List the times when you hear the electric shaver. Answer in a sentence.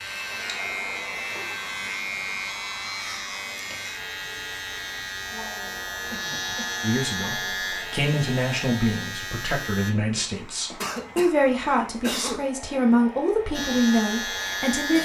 You can hear the electric shaver from 0.0 to 9.9 s and from 13.5 to 15.0 s.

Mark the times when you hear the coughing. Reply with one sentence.
The coughing can be heard from 1.3 to 2.5 s, from 6.1 to 6.8 s and from 10.8 to 12.5 s.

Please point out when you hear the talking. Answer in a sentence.
The talking can be heard from 6.8 to 15.0 s.